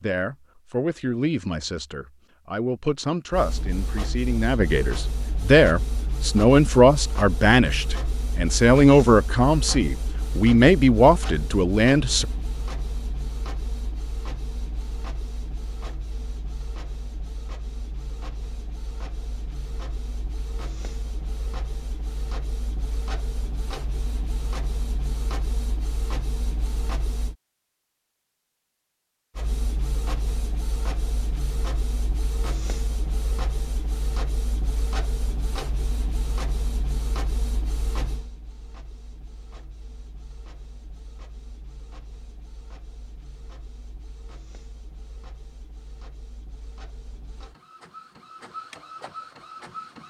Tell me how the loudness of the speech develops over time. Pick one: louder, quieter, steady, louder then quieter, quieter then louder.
louder.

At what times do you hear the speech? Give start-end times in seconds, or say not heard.
0.0-12.2.